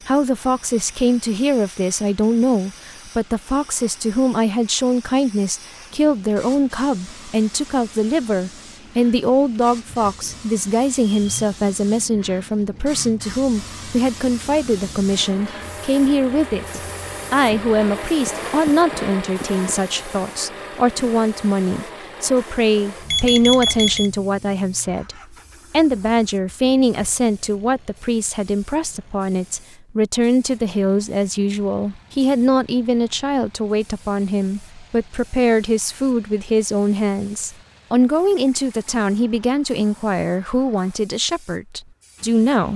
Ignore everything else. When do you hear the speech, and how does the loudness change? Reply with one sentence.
You can hear the speech from 0.1 to 42.7 s, at a steady volume.